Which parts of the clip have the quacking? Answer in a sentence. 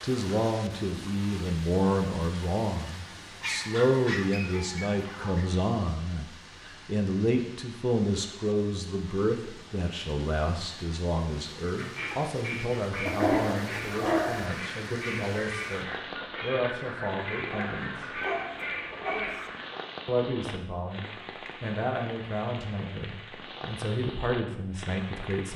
The quacking can be heard from 11.7 to 19.9 s.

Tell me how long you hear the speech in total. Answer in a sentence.
The speech can be heard for 24 seconds in total.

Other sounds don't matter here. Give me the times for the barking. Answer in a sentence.
The barking can be heard from 3.4 to 5.5 s, from 13.1 to 14.5 s and from 17.5 to 19.5 s.